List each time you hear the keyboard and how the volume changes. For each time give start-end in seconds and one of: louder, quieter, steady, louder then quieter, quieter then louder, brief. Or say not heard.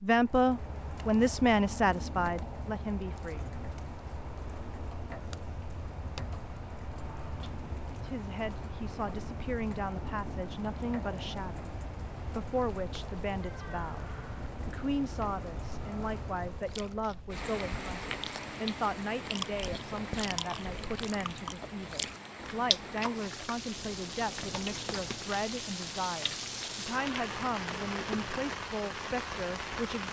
not heard.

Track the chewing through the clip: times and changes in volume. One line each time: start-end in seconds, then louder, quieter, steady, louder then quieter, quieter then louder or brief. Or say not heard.
16.6-28.5 louder then quieter.